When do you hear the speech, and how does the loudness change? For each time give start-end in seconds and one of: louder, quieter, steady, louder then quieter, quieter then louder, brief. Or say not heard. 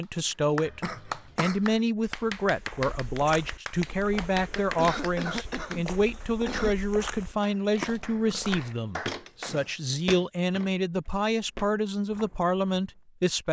0.0-13.4 steady.